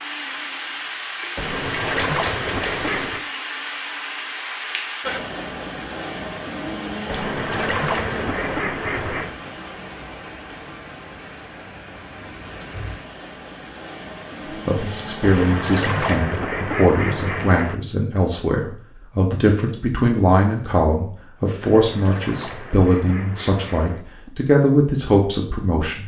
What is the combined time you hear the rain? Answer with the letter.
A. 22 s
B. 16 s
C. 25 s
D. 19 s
B.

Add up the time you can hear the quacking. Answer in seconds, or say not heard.
9 s.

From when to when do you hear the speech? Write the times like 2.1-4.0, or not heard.
14.7-26.0.